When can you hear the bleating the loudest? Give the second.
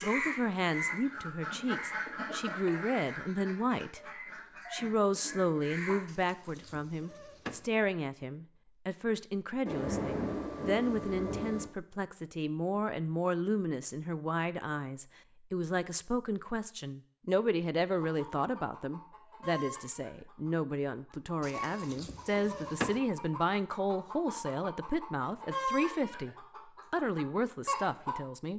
23 s.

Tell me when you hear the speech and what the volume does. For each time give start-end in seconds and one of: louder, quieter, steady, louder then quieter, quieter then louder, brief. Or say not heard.
0.0-4.0 quieter then louder
4.7-28.5 steady.